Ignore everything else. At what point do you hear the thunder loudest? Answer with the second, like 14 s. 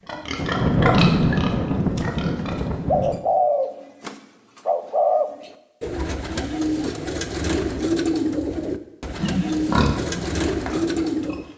1 s.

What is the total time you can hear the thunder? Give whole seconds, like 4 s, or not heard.
3 s.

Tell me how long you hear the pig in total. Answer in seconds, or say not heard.
5 s.